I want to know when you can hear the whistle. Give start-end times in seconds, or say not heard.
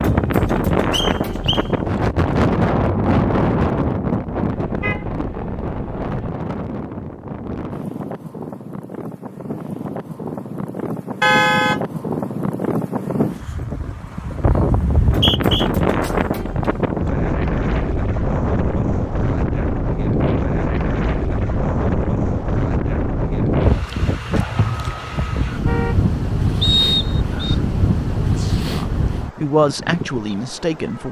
0.9-1.6, 15.1-15.7, 26.6-27.6.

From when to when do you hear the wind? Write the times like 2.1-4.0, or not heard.
0.0-31.0.